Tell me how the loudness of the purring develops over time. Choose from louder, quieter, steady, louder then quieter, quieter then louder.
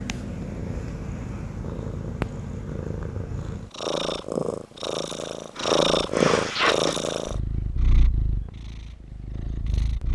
louder then quieter.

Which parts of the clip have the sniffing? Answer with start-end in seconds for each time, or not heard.
5.5-7.0.